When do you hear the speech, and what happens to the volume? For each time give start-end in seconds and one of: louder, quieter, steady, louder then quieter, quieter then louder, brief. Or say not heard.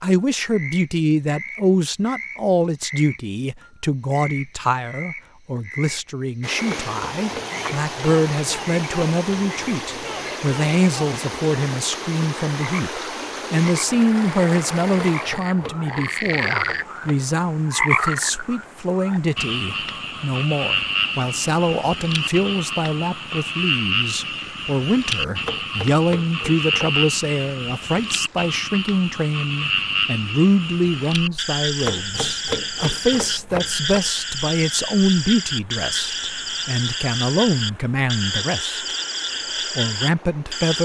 0.0-39.0 steady
39.8-40.8 brief.